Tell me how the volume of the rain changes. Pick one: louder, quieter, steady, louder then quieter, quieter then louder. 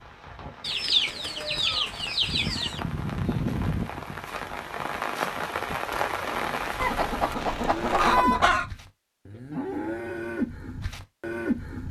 louder.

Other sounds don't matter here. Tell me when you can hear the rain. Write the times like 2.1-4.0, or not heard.
0.0-8.2.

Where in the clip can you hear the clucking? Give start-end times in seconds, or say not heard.
0.6-2.8, 6.8-8.7.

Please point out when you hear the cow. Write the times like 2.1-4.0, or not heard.
7.6-11.8.